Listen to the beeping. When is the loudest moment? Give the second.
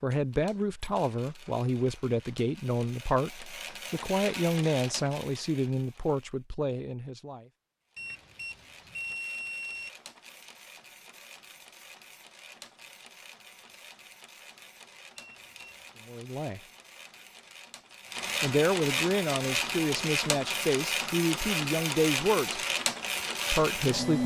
9 s.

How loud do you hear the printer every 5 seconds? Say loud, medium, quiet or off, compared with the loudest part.
quiet, quiet, quiet, medium, loud.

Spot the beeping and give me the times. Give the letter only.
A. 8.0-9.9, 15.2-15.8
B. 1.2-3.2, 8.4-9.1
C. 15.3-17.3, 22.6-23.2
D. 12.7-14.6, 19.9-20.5
A.